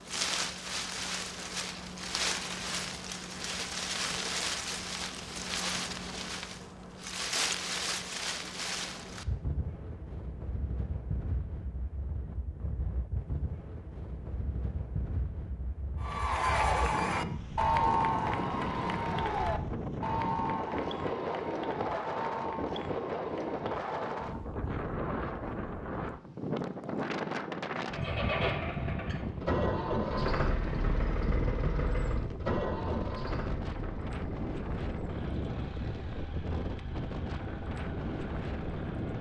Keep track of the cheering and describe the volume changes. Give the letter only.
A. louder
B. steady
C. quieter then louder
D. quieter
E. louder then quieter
D.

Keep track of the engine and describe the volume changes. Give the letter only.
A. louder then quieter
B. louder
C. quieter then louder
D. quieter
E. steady
D.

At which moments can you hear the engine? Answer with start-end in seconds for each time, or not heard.
27.9-39.1.